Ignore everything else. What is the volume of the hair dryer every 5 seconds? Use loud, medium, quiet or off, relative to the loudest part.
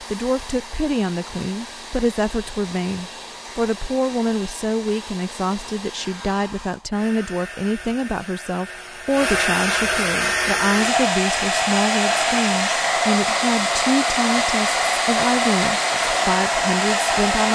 quiet, medium, loud, loud.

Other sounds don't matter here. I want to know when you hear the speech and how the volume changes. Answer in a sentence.
You can hear the speech from 0.0 to 17.5 s, at a steady volume.